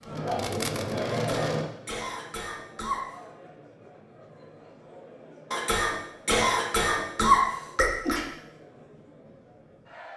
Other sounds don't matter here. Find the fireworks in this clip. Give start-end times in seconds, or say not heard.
0.0-1.6.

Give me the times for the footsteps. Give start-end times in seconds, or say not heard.
not heard.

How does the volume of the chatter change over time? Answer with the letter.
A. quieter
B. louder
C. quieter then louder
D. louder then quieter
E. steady
A.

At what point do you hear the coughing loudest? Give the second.
7 s.